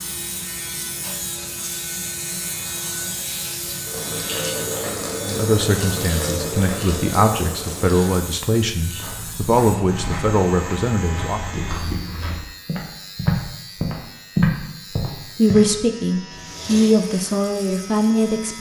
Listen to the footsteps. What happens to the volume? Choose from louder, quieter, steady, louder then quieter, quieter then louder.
louder.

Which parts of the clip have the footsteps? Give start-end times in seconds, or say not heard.
8.8-15.7.